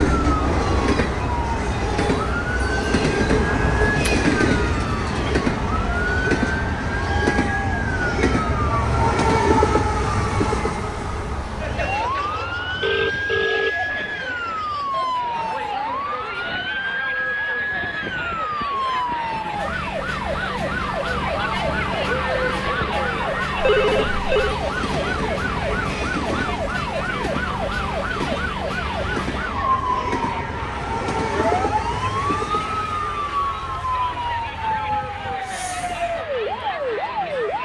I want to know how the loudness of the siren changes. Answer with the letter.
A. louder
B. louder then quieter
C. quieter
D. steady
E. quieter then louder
D.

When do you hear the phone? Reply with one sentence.
You can hear the phone from 12.8 to 13.8 s and from 23.6 to 24.6 s.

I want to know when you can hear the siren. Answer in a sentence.
You can hear the siren from 0.0 to 37.6 s.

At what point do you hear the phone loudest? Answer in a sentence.
The volume of the phone peaks at 24 seconds.